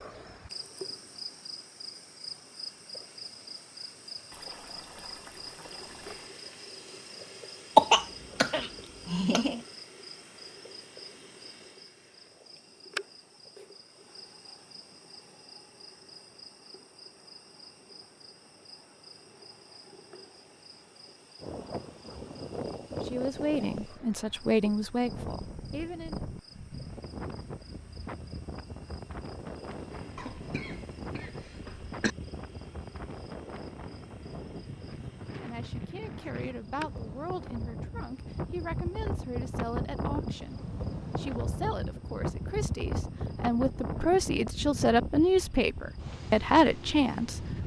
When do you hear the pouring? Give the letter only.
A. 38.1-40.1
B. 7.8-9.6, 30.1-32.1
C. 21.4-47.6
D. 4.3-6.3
D.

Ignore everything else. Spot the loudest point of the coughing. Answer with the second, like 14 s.
8 s.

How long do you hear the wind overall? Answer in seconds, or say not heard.
26 s.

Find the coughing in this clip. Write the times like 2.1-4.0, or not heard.
7.8-9.6, 30.1-32.1.